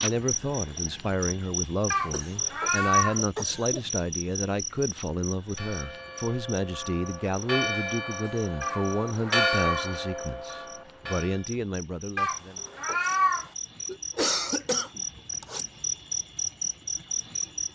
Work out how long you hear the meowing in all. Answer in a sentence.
The meowing can be heard for 4 seconds in total.